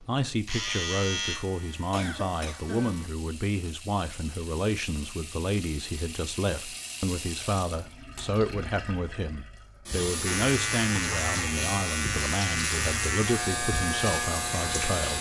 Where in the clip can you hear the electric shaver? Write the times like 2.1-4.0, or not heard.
0.0-3.1, 10.2-15.1.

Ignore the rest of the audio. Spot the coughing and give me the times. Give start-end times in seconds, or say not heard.
1.9-3.0.